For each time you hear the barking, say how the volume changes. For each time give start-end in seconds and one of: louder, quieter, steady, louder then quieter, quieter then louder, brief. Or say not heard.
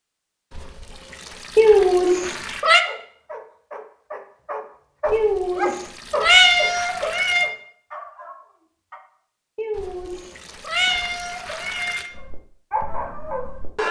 2.8-9.0 louder then quieter
12.1-13.8 brief.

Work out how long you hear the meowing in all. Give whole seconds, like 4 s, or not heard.
6 s.